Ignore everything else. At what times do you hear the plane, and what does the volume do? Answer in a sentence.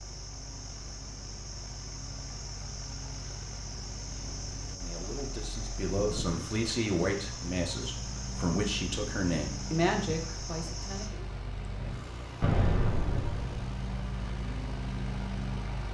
You can hear the plane from 0.0 to 15.8 s, getting louder.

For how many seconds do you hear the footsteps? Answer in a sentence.
You can't hear the footsteps here.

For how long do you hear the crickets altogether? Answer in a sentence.
The crickets can be heard for 11 seconds in total.